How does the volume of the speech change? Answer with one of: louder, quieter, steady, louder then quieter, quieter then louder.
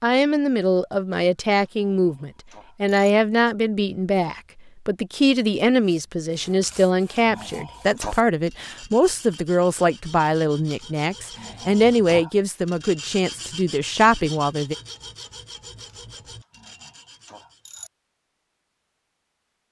steady.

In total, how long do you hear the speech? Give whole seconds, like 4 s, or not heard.
15 s.